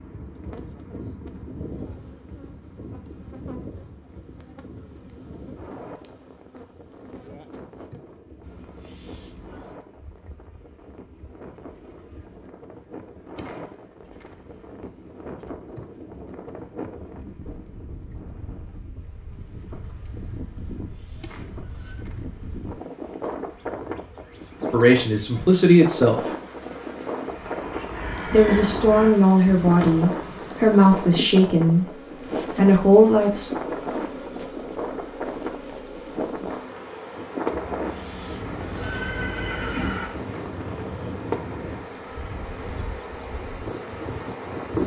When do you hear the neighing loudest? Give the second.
40 s.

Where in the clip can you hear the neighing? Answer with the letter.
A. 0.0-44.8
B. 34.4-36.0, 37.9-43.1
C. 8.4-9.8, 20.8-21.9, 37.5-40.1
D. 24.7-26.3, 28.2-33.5
C.